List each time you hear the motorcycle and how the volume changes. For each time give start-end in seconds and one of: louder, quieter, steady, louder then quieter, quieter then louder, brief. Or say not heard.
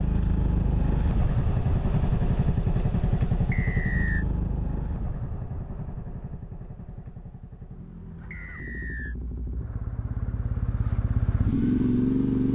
0.0-12.5 quieter then louder.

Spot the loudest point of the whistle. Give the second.
4 s.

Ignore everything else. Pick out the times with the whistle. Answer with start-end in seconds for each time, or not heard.
3.5-4.2, 8.3-9.2.